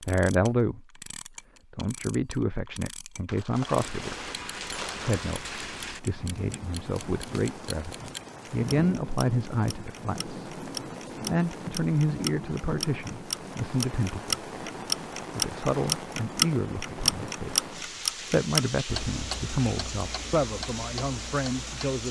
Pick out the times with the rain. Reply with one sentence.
You can hear the rain from 3.5 to 22.0 s.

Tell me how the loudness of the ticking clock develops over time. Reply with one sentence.
The volume of the ticking clock goes up, then down.